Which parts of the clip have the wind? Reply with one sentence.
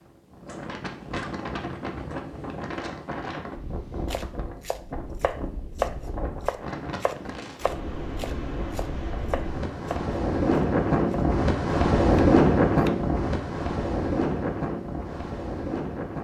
You can hear the wind from 0.0 to 16.1 s.